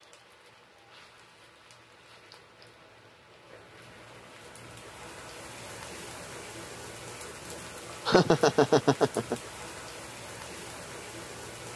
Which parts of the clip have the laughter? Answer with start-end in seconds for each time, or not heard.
8.1-9.3.